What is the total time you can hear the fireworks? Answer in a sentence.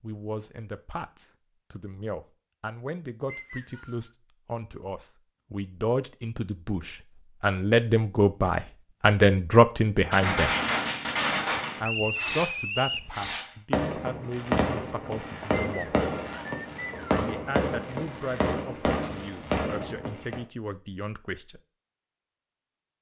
You can hear the fireworks for 10 seconds altogether.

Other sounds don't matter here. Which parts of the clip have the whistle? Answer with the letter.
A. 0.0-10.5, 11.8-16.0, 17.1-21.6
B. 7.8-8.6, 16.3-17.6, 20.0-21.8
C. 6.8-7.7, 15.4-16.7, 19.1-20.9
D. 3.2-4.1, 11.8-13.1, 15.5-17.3
D.